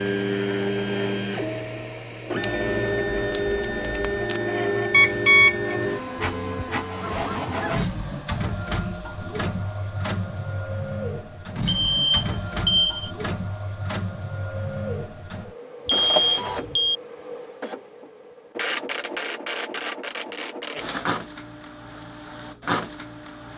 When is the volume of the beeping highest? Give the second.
5 s.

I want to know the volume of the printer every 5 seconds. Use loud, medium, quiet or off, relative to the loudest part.
loud, loud, medium, medium, medium.